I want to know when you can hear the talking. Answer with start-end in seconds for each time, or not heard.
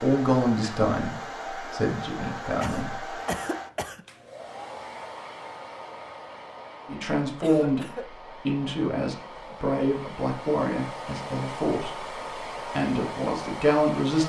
0.0-3.1, 6.8-7.8, 8.4-12.0, 12.7-14.2.